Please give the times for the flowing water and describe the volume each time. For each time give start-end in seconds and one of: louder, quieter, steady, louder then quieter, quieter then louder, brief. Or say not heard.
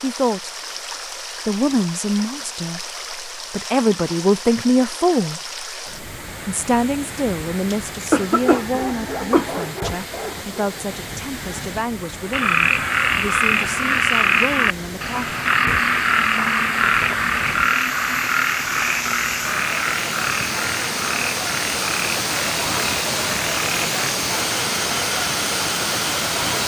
0.0-26.6 louder.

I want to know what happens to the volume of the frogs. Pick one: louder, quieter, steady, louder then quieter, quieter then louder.
quieter.